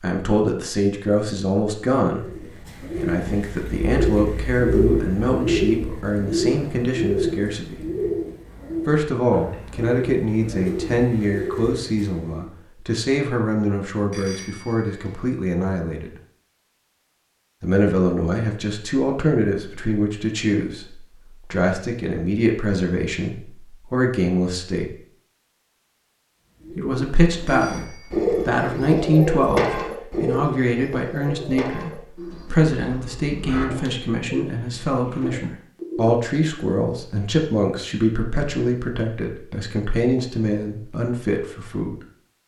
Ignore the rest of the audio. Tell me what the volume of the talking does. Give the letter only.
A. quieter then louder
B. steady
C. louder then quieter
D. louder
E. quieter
B.